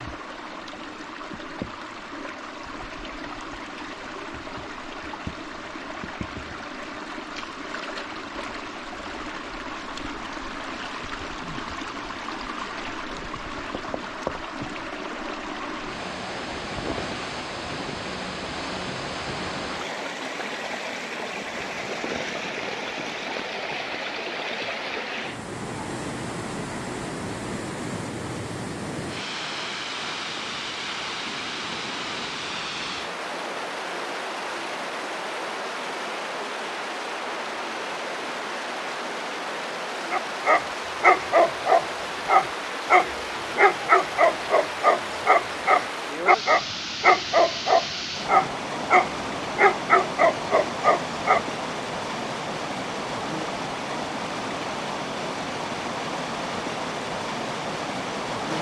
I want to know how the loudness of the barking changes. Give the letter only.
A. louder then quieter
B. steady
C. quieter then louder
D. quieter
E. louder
B.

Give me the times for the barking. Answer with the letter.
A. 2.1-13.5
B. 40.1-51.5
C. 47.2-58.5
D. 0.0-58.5
B.